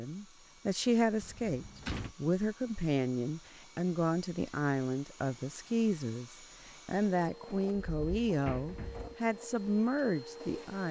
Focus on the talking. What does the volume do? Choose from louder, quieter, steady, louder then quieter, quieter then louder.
steady.